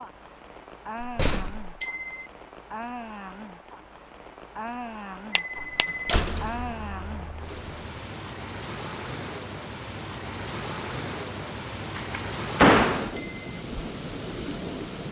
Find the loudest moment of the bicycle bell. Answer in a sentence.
The volume of the bicycle bell peaks at 2 seconds.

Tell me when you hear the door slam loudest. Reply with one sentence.
The volume of the door slam peaks at 13 seconds.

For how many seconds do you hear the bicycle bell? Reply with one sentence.
You can hear the bicycle bell for 2 seconds altogether.